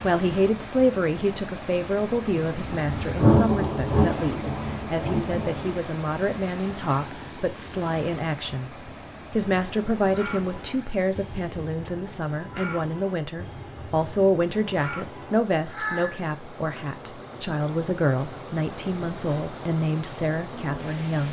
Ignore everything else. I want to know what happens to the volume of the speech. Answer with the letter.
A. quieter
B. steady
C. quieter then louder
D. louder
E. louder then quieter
B.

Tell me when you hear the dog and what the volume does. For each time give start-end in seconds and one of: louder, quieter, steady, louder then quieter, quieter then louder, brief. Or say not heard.
not heard.